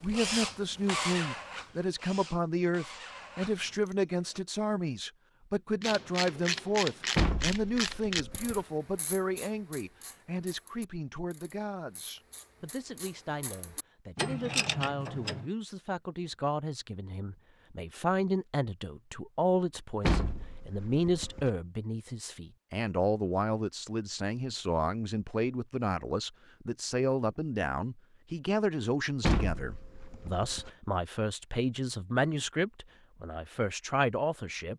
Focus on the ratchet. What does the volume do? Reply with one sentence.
The loudness of the ratchet goes down, then up.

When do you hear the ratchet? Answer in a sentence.
The ratchet can be heard from 5.8 to 15.4 s.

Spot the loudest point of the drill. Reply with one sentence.
The loudest moment of the drill is at 1 second.